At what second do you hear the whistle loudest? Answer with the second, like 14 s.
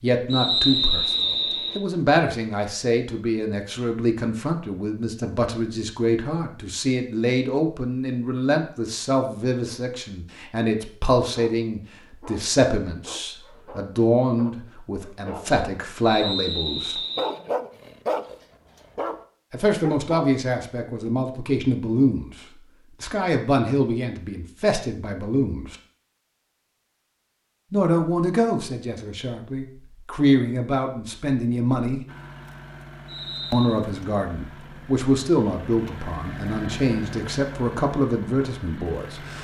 1 s.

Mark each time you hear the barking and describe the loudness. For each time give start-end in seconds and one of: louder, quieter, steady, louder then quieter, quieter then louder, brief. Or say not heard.
11.2-16.5 louder
17.1-19.2 brief
19.8-20.4 brief.